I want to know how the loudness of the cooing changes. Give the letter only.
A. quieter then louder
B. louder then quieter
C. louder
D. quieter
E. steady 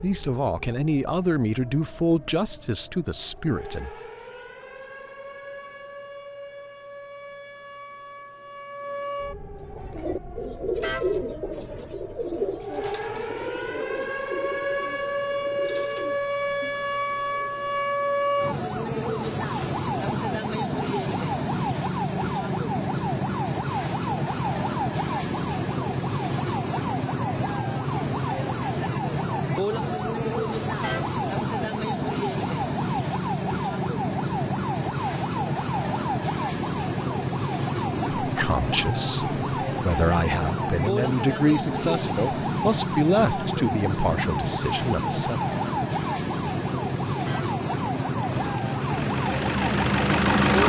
D.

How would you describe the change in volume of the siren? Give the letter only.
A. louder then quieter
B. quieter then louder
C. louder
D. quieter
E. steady
C.